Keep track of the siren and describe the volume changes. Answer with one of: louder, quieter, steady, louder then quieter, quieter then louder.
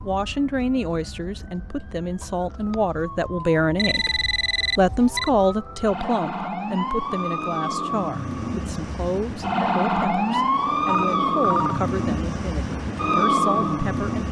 louder.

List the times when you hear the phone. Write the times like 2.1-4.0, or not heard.
3.8-5.3, 10.8-11.8.